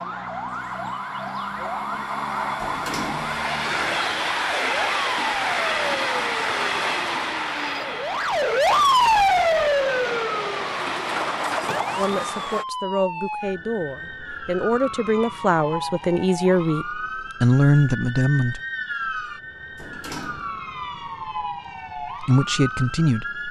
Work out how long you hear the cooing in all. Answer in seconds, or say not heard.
not heard.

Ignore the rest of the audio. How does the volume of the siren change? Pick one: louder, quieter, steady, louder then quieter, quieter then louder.
louder then quieter.